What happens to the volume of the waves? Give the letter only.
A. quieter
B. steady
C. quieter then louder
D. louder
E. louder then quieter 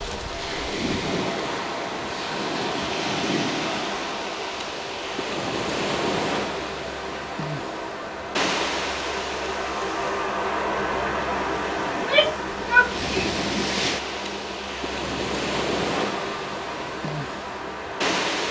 B.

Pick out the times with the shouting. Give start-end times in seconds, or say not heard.
11.9-13.4.